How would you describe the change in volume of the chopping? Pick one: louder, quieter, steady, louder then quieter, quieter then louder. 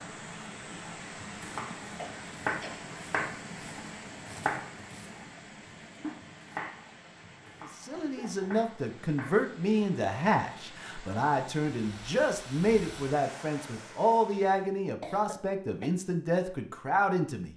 quieter.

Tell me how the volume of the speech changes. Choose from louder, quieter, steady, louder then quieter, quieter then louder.
steady.